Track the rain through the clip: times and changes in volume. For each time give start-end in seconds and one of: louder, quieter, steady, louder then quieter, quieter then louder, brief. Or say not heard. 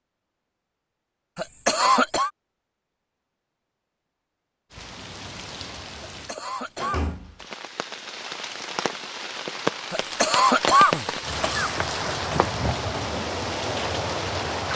4.7-14.7 louder.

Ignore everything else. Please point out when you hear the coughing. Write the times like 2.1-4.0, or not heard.
1.4-2.3, 6.0-7.1, 9.9-12.4.